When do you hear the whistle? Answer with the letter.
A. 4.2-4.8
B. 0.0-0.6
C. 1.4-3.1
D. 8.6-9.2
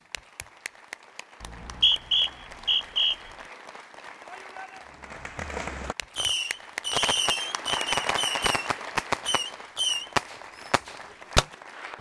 C.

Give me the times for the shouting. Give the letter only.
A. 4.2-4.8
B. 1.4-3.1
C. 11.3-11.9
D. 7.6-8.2
A.